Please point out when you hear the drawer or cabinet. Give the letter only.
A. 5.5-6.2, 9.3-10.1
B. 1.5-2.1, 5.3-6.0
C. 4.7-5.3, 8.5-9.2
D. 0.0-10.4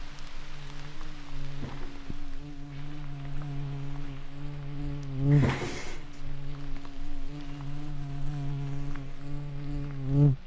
B.